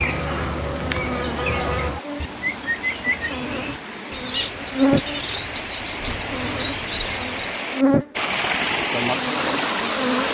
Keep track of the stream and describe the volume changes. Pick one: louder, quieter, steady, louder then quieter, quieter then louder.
louder.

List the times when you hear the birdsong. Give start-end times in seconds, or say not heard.
0.0-7.5.